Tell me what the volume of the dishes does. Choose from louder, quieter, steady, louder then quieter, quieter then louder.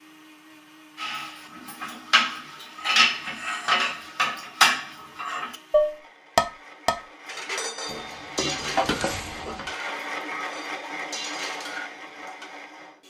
quieter.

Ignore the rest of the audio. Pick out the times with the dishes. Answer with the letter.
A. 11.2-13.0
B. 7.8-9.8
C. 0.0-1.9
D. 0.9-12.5
D.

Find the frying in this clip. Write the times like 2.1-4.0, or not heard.
7.8-9.8.